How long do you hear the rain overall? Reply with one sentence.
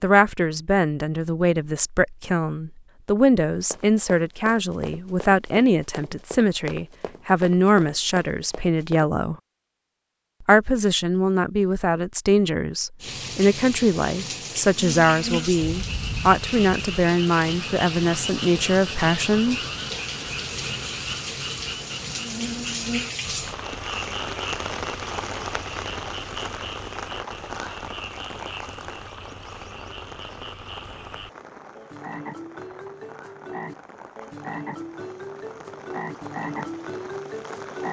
The rain can be heard for 25 seconds in total.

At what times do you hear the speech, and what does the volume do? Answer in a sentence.
You can hear the speech from 0.0 to 9.3 s, at a steady volume; and from 10.4 to 19.6 s, at a steady volume.